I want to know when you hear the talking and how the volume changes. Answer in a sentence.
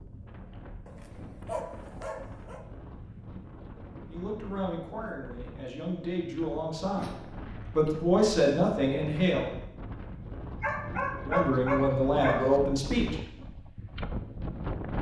The talking can be heard from 4.1 to 9.4 s, getting louder; and briefly from 11.2 to 13.2 s.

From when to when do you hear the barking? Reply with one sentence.
The barking can be heard from 0.8 to 2.6 s, from 7.0 to 8.1 s and from 10.6 to 12.6 s.